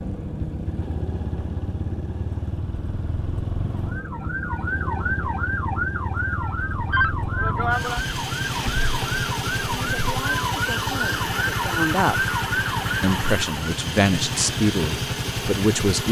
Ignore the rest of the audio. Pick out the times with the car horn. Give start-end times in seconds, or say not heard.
not heard.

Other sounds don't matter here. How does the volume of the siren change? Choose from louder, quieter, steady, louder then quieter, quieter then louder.
steady.